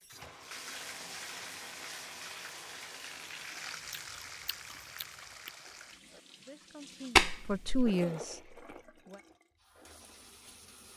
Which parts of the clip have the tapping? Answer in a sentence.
You can hear the tapping from 7.2 to 7.9 s.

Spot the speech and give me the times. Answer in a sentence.
The speech can be heard from 6.4 to 9.2 s.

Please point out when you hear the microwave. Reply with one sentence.
You can't hear the microwave here.